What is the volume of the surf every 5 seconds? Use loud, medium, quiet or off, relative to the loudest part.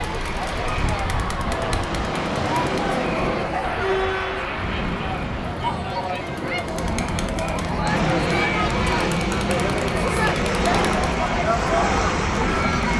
loud, medium, loud.